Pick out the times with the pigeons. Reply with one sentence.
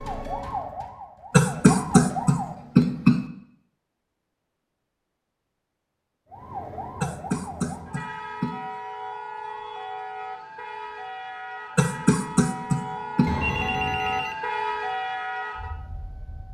You can't hear the pigeons here.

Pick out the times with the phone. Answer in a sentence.
The phone can be heard from 13.2 to 14.4 s.